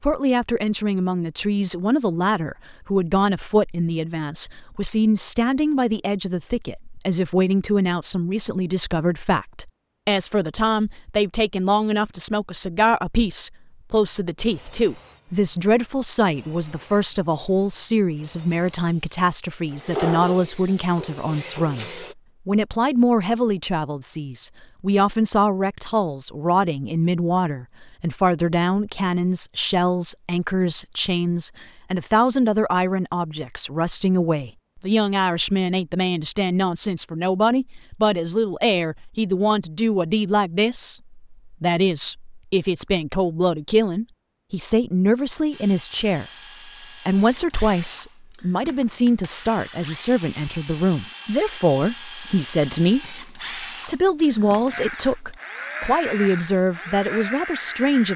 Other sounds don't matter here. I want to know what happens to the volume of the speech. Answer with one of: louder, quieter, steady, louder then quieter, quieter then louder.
steady.